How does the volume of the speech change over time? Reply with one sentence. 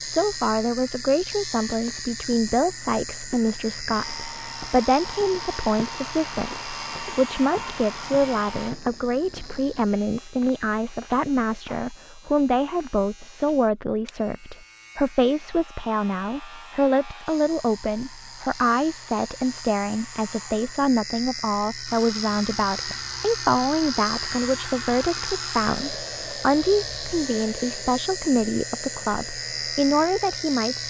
The loudness of the speech stays about the same.